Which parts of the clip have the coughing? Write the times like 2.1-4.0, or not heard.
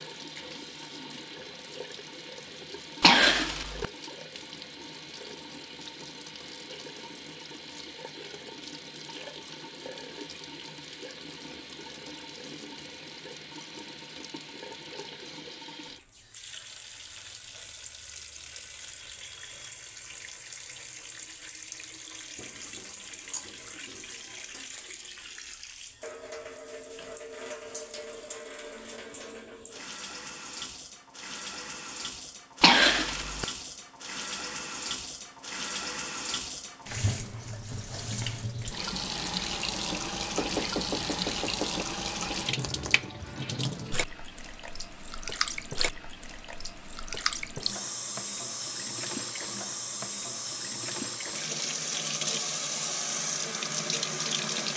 3.0-3.9, 32.6-33.5.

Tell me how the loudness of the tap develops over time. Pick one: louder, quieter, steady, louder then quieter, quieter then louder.
louder.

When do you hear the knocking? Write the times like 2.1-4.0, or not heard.
40.4-41.9.